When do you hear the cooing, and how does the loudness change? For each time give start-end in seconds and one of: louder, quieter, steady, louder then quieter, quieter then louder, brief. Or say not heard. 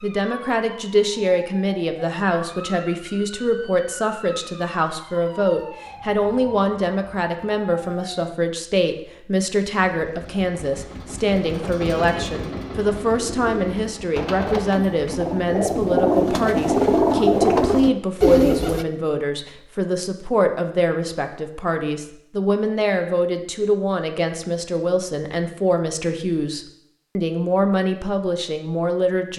11.8-18.9 louder.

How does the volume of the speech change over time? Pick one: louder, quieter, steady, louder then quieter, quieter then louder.
steady.